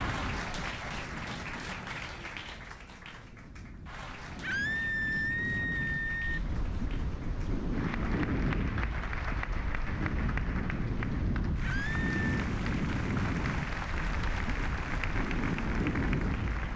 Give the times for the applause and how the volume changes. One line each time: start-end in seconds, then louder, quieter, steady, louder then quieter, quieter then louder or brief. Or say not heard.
0.0-16.7 quieter then louder.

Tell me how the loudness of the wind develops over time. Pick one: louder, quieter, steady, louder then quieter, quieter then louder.
louder.